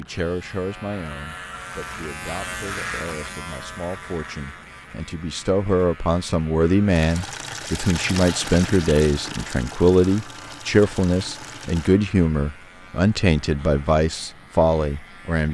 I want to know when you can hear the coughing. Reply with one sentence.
The coughing can't be heard in this clip.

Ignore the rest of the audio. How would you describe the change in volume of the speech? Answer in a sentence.
The volume of the speech goes up.